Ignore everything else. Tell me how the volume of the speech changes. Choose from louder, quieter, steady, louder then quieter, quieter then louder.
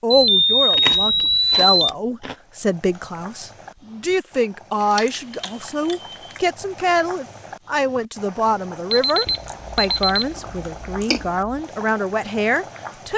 steady.